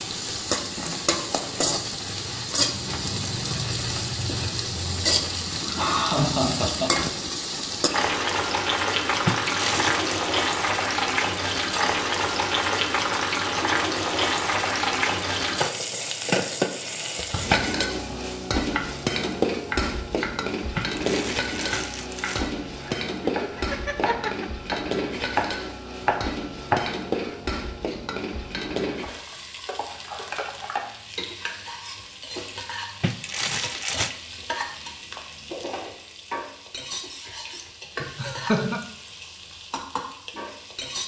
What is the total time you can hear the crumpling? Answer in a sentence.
The crumpling can be heard for 4 seconds in total.